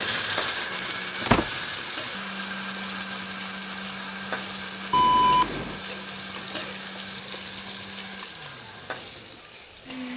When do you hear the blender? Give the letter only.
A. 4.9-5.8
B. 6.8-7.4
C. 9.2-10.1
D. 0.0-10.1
D.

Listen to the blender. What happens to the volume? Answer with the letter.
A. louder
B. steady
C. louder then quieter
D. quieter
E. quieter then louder
D.